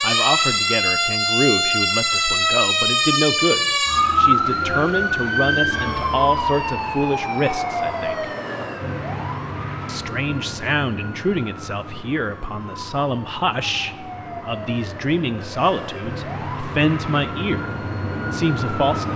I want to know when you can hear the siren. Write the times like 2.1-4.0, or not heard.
0.0-19.1.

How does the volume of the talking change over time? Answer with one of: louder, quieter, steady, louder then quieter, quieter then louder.
steady.